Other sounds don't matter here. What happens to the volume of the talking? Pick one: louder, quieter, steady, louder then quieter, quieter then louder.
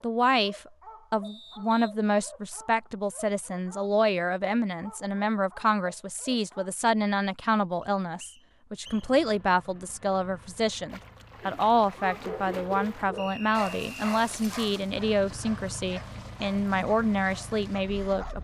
steady.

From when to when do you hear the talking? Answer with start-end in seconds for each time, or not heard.
0.0-18.3.